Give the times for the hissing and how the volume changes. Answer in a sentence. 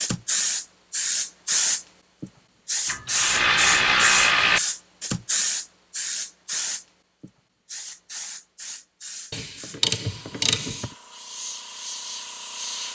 The hissing can be heard from 0.0 to 12.9 s, getting quieter.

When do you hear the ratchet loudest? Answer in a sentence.
The volume of the ratchet peaks at 4 seconds.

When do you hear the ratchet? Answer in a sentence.
You can hear the ratchet from 2.9 to 4.6 s and from 9.3 to 10.9 s.